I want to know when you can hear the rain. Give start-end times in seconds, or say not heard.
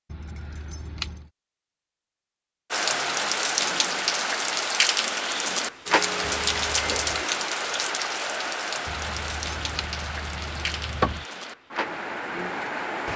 2.7-13.1.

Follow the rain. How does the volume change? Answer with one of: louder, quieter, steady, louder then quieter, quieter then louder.
quieter.